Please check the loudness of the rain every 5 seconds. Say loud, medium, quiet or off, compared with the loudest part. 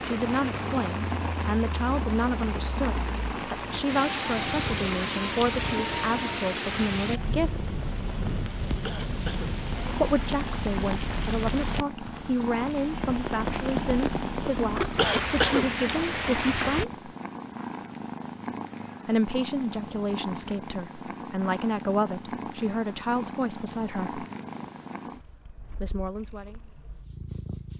loud, loud, loud, loud, off, off.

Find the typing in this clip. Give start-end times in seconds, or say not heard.
not heard.